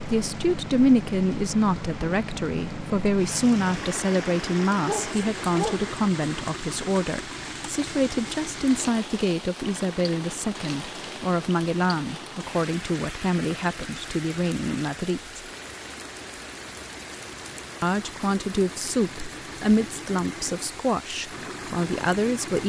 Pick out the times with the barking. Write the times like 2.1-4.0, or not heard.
4.8-5.9.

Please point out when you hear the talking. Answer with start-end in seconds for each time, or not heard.
0.1-15.4, 17.8-22.6.